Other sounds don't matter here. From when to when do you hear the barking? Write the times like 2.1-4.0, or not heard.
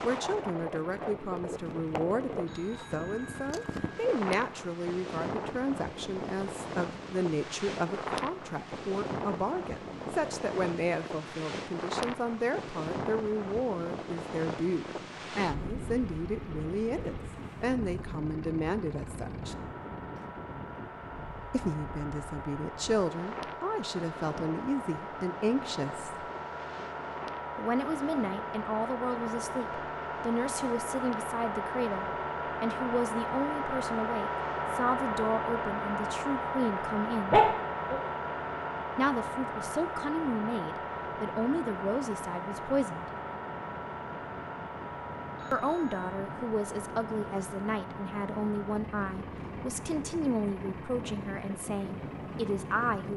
37.3-38.0.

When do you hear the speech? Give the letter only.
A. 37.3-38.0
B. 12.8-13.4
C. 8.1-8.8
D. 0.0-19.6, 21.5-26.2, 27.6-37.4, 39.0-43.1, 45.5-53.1
D.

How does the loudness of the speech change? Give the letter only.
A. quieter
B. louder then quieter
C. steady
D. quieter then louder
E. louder
C.